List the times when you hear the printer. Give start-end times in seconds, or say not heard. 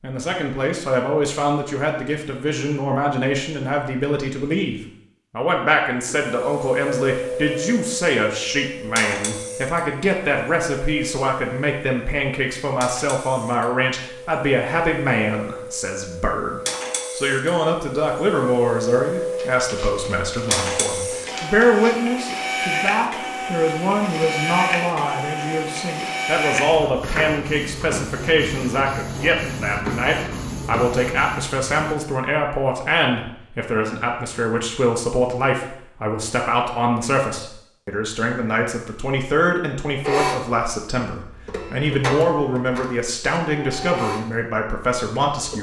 6.0-31.9, 40.0-45.5.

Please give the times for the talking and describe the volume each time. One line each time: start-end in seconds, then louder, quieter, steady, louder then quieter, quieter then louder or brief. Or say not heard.
0.0-45.5 steady.